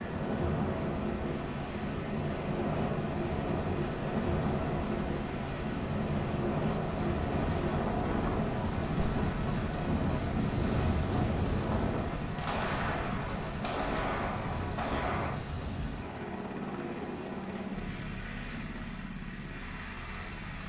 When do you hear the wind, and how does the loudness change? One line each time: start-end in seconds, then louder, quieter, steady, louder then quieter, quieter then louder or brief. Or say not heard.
0.0-12.2 steady.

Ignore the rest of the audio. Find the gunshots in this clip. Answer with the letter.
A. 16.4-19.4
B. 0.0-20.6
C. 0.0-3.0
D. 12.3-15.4
D.